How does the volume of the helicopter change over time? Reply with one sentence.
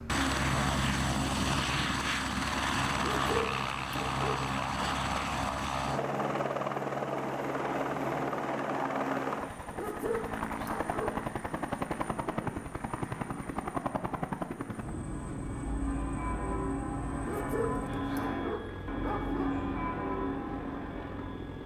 The loudness of the helicopter goes down.